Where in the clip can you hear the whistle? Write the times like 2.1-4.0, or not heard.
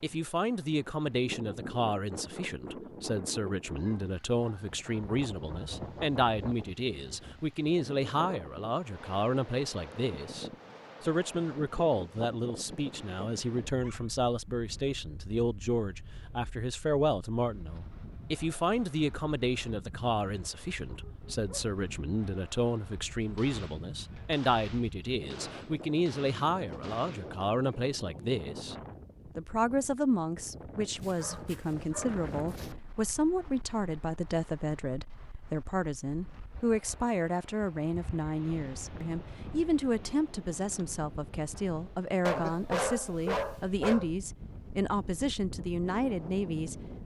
not heard.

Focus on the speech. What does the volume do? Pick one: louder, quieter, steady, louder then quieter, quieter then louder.
steady.